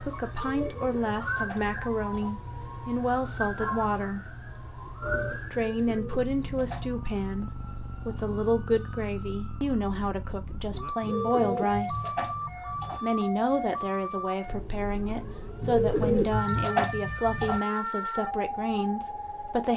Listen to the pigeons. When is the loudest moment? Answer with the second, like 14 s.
16 s.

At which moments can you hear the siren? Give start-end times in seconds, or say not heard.
0.0-19.7.